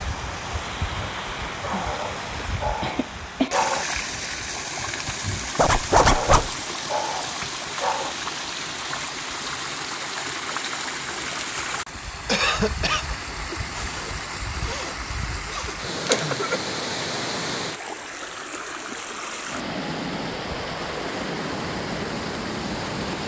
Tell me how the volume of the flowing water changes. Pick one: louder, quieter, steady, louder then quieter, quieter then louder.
steady.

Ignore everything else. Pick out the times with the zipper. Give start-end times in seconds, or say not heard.
5.5-6.5, 13.8-16.2.